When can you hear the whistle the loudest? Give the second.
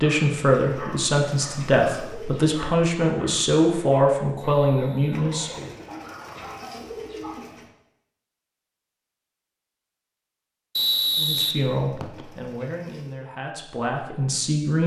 11 s.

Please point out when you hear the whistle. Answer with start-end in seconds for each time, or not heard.
4.5-5.8, 10.8-12.2.